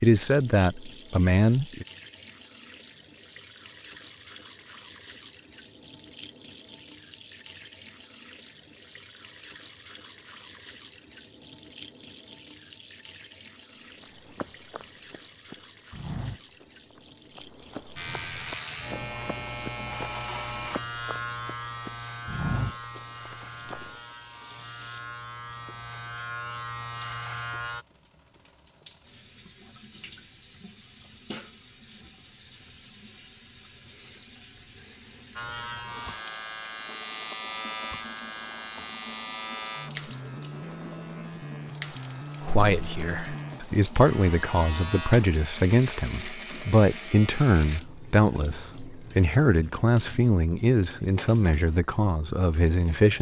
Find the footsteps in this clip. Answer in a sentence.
You can hear the footsteps from 14.0 to 23.9 s.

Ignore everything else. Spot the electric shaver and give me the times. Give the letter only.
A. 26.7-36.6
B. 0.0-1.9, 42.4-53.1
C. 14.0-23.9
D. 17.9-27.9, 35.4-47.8
D.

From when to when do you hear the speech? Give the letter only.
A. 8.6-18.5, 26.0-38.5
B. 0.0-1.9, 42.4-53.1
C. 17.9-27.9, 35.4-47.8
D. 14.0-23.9
B.